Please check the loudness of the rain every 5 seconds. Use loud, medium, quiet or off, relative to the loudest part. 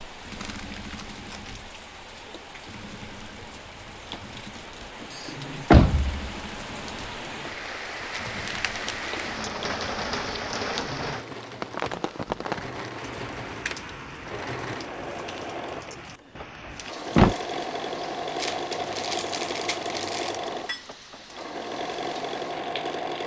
medium, loud, loud, medium, medium.